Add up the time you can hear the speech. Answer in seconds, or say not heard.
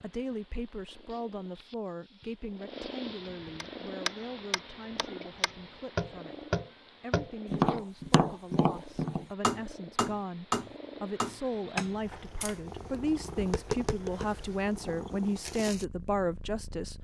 17 s.